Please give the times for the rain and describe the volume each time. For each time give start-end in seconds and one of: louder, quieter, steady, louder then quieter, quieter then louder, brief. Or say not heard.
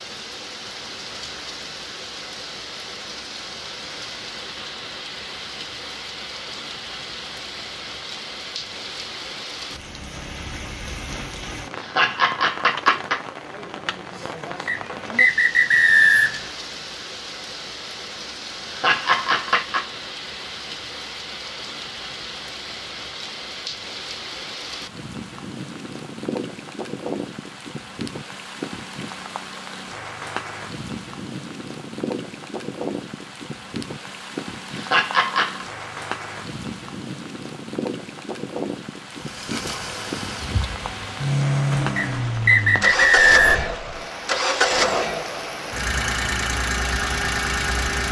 0.0-48.0 steady.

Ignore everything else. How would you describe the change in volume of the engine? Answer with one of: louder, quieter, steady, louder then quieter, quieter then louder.
louder.